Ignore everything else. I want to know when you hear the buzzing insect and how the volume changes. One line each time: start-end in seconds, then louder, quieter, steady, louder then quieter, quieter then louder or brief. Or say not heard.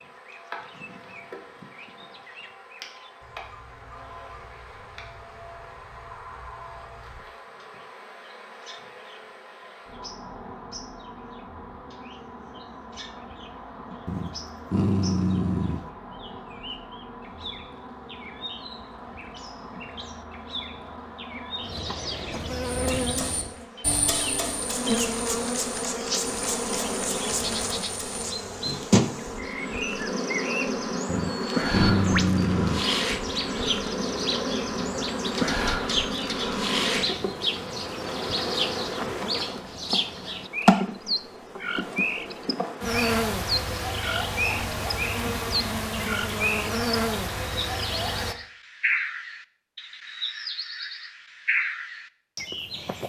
0.0-48.4 louder.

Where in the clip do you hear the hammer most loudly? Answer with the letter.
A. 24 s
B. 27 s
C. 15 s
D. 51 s
A.